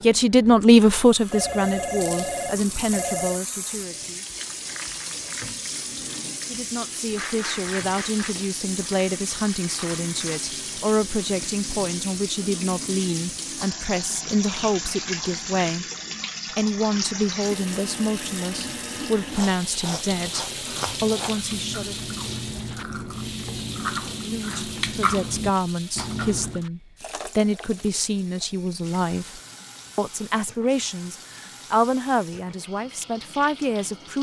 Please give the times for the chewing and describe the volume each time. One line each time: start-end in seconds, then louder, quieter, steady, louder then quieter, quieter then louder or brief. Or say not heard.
19.1-26.6 louder.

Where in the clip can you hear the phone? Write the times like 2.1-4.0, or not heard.
1.2-3.4, 25.9-26.4.